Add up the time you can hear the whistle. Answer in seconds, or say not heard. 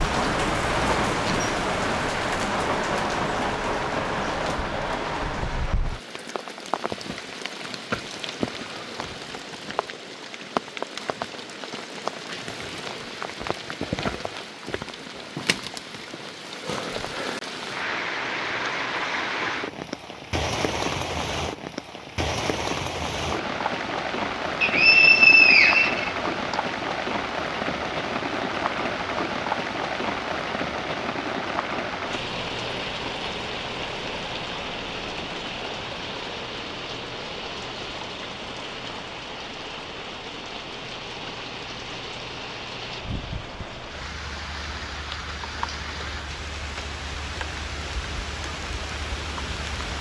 2 s.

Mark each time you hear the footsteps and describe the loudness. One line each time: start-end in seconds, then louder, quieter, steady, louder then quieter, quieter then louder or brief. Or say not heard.
not heard.